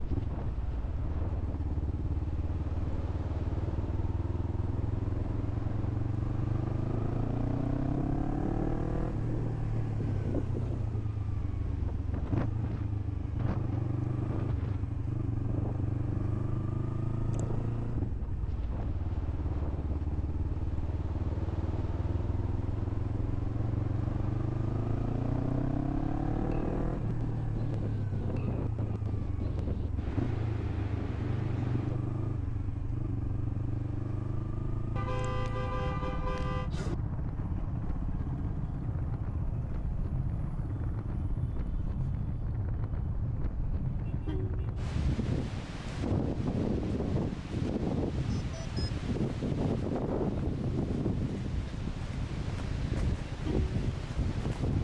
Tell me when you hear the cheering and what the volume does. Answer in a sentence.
The cheering can't be heard in this clip.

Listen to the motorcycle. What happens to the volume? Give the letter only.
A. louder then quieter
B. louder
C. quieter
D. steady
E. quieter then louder
C.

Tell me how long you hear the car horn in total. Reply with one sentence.
The car horn can be heard for 2 seconds in total.